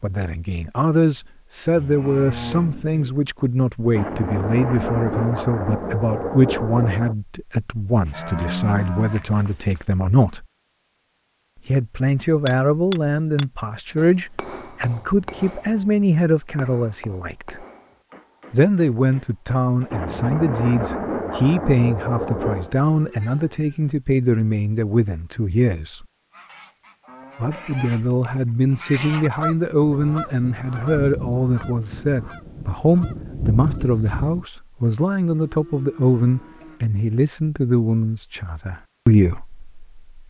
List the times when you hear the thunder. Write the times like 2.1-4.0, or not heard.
3.9-7.2, 19.9-22.8, 29.8-34.5.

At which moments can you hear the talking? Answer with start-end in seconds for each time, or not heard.
0.0-10.4, 11.7-17.6, 18.5-26.1, 27.4-40.2.